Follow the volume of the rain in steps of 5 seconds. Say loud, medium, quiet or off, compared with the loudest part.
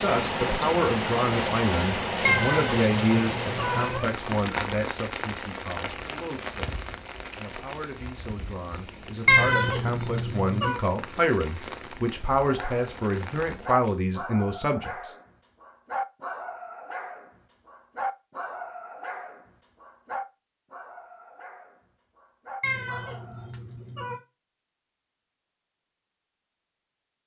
loud, medium, quiet, off, off, off.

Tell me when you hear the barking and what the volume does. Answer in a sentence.
You can hear the barking from 12.4 to 23.5 s, getting quieter.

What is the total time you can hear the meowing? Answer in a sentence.
You can hear the meowing for 5 seconds altogether.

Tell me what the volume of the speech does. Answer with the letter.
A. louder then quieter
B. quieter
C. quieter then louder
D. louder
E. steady
C.